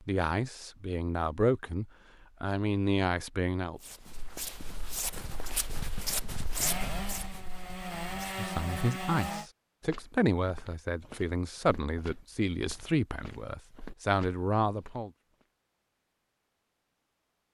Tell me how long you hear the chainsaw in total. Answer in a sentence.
The chainsaw can be heard for 3 seconds in total.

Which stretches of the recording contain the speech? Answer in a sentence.
You can hear the speech from 0.1 to 3.8 s and from 8.1 to 15.1 s.